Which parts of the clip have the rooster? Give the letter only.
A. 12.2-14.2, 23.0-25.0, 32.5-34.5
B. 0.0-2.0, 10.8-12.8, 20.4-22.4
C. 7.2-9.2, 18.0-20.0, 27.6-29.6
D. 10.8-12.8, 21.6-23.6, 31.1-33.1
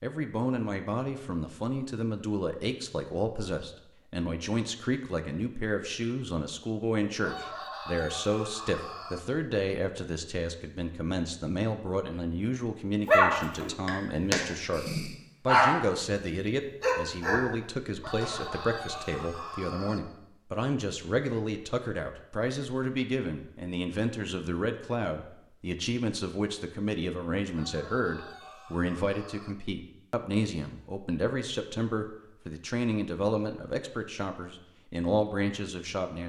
C.